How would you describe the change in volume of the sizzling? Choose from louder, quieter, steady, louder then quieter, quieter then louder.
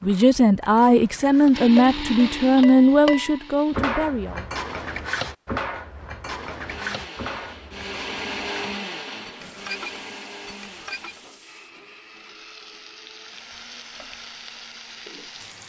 louder.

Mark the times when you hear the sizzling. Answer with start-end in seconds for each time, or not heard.
9.3-15.6.